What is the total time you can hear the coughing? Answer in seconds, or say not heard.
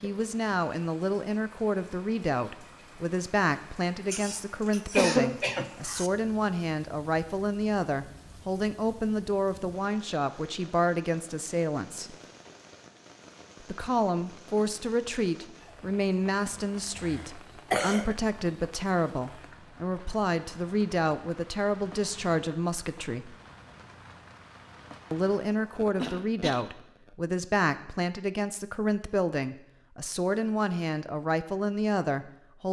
5 s.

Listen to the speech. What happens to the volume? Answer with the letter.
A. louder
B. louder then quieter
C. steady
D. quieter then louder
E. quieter
C.